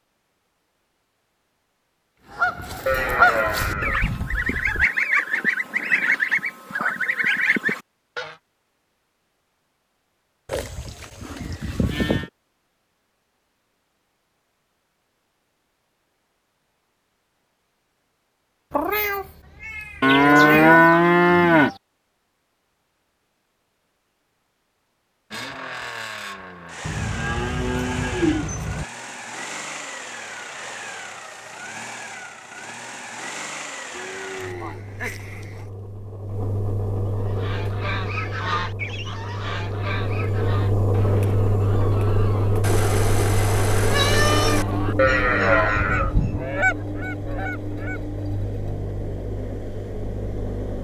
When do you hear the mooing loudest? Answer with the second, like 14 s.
21 s.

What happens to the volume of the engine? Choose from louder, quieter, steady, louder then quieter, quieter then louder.
louder then quieter.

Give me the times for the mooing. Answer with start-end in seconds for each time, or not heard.
2.9-4.8, 10.4-12.3, 20.0-21.8, 26.8-28.9, 33.9-35.6, 45.0-46.5.